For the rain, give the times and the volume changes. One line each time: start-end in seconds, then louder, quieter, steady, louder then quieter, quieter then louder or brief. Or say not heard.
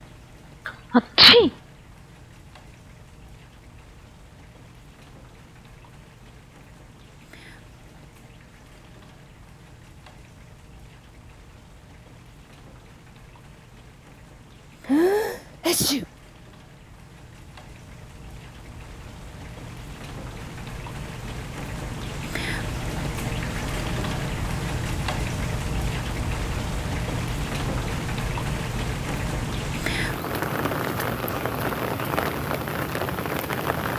0.0-33.9 louder.